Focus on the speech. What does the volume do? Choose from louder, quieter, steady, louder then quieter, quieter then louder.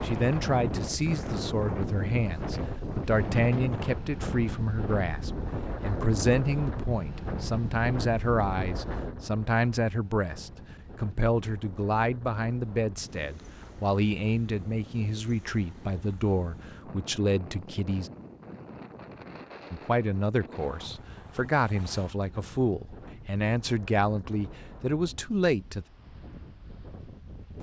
steady.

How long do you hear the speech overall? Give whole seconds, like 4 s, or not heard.
24 s.